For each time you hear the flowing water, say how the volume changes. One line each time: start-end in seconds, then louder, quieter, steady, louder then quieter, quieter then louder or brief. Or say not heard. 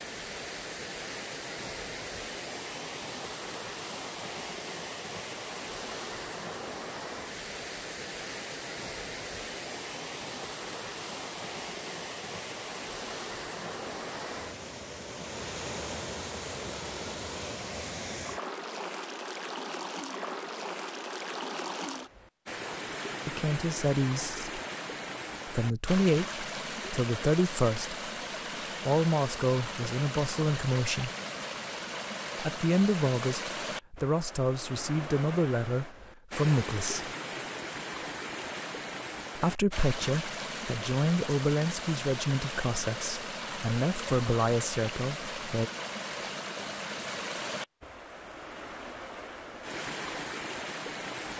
0.0-51.3 steady.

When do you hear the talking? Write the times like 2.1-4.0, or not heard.
23.2-24.6, 25.4-27.9, 28.9-31.1, 32.4-37.1, 39.4-45.7.